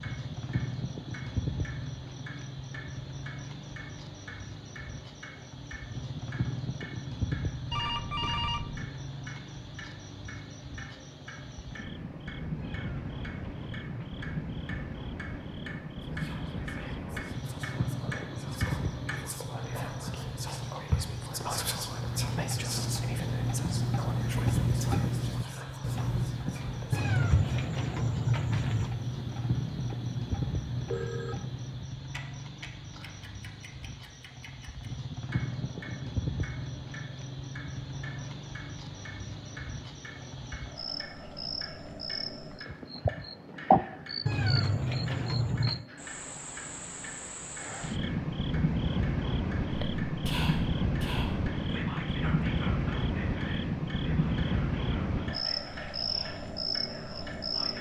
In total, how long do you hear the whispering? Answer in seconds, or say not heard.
20 s.